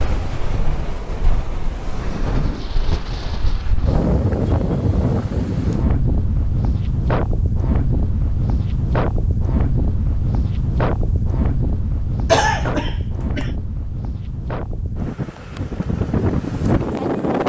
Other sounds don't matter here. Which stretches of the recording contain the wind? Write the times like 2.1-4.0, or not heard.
0.0-17.4.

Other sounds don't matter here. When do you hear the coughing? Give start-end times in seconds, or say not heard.
12.2-13.5.